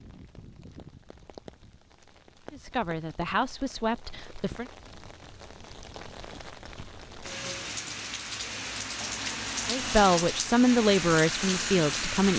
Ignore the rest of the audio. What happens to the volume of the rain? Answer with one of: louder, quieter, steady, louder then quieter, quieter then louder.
louder.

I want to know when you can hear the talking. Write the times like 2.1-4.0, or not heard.
2.5-4.7, 9.7-12.3.